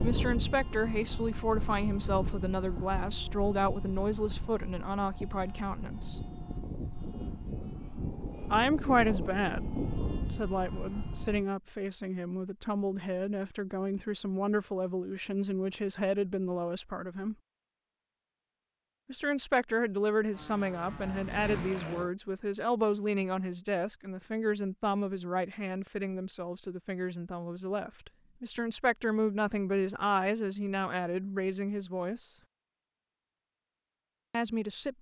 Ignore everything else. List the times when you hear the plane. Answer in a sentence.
You can hear the plane from 0.0 to 11.4 s and from 20.3 to 22.1 s.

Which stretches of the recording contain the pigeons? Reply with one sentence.
You can't hear the pigeons here.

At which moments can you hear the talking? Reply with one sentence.
You can hear the talking from 0.0 to 6.2 s, from 8.5 to 17.4 s, from 19.1 to 32.4 s and from 34.3 to 34.9 s.